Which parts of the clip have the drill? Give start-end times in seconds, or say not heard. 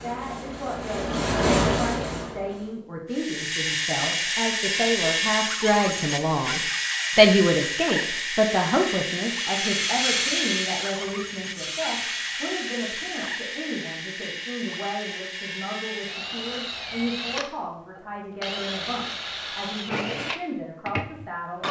3.1-21.6.